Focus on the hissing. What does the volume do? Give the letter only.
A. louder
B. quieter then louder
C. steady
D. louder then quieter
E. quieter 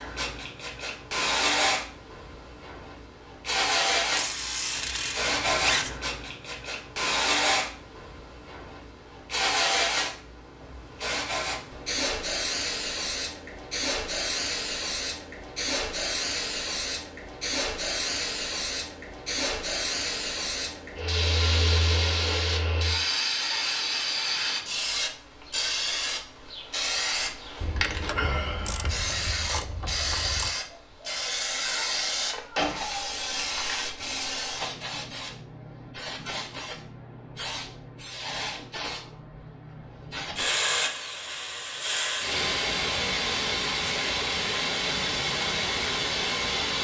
C.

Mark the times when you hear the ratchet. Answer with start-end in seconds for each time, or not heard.
4.1-6.0, 27.6-30.6.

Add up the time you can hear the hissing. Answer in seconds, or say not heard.
47 s.